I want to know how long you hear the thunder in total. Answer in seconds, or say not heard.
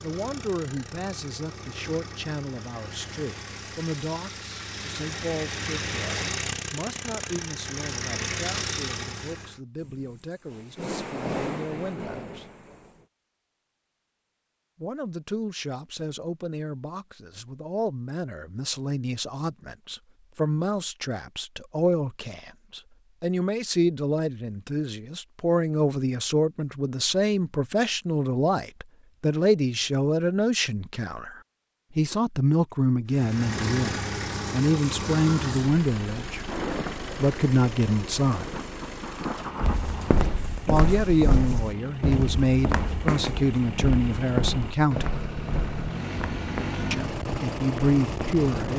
7 s.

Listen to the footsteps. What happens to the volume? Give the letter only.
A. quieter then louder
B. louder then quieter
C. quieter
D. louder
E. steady
C.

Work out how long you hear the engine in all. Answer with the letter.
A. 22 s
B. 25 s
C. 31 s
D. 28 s
B.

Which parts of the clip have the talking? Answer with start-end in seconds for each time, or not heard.
0.0-12.4, 14.8-38.6, 40.6-45.1, 46.9-48.7.